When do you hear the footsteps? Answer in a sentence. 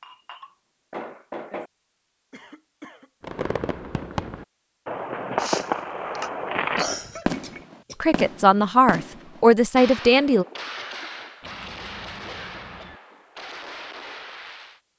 The footsteps can't be heard in this clip.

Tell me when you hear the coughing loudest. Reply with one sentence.
The loudest moment of the coughing is at 7 seconds.